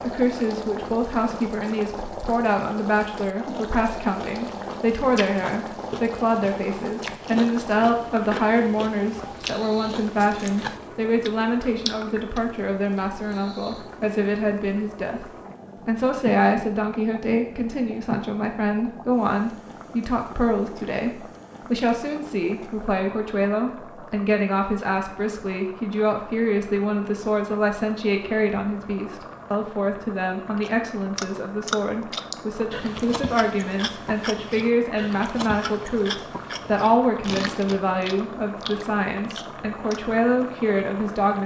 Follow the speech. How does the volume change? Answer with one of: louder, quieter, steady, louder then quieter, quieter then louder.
steady.